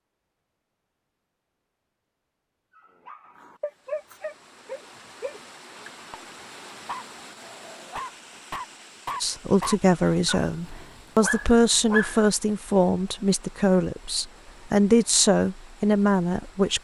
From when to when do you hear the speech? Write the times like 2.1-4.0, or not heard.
9.2-16.7.